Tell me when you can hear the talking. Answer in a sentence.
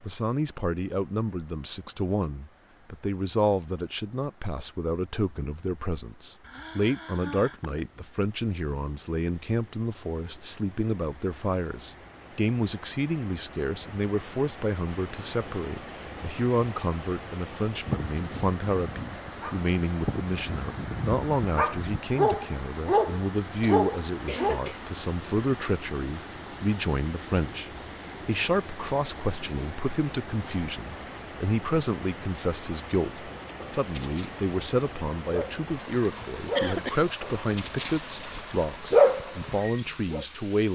You can hear the talking from 0.0 to 40.7 s.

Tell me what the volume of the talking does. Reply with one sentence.
The volume of the talking stays about the same.